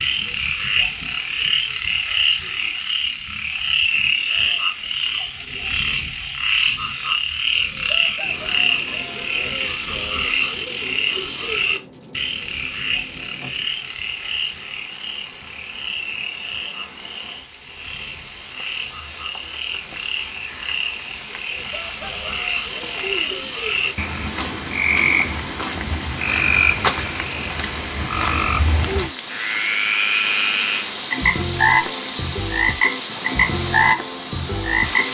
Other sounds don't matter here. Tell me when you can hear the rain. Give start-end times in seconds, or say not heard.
8.2-35.0.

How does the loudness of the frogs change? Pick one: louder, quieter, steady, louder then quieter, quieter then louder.
quieter then louder.